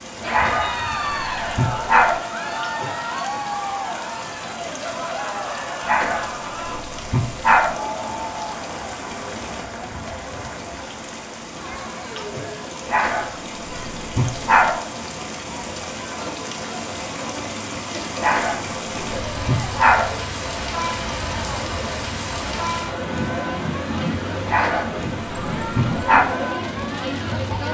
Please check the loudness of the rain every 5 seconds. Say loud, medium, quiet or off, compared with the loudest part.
medium, medium, medium, loud, loud, loud.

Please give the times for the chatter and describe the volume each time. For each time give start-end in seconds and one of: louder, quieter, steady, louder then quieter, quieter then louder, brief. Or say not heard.
0.1-27.6 quieter then louder.